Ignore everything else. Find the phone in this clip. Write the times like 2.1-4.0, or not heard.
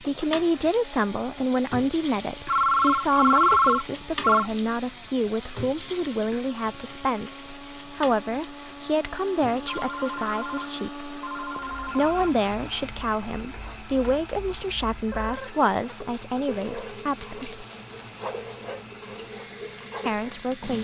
2.5-4.5, 9.7-12.3, 15.1-15.9.